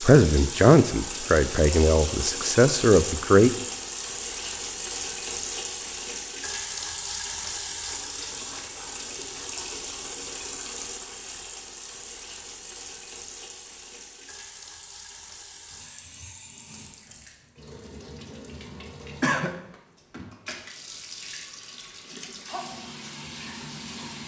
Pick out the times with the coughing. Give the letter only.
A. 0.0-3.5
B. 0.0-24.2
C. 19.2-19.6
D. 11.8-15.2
C.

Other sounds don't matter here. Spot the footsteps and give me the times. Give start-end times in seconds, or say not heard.
not heard.